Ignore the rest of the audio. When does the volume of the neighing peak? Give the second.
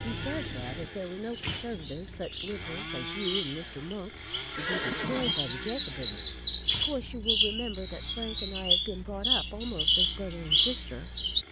5 s.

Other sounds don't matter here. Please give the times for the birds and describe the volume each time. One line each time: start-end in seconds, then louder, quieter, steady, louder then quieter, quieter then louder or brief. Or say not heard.
0.0-11.4 louder.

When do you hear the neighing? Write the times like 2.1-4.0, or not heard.
3.5-5.3.